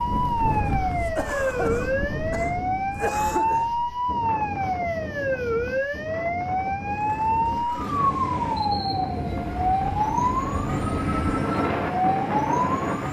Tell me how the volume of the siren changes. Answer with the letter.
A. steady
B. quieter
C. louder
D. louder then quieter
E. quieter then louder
A.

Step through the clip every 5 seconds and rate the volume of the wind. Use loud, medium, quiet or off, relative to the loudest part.
medium, medium, loud.